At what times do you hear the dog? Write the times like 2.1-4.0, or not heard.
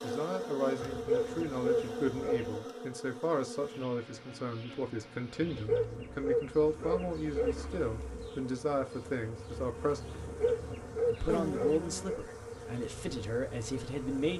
0.8-2.5, 5.4-7.8, 10.1-12.2.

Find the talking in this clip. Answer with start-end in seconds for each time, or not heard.
0.0-10.2, 11.1-14.3.